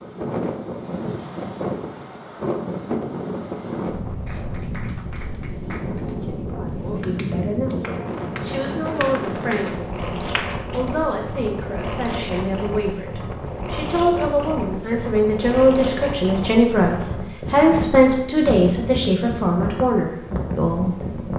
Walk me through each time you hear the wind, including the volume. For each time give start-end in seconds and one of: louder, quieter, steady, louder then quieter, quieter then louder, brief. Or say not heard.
0.0-21.3 steady.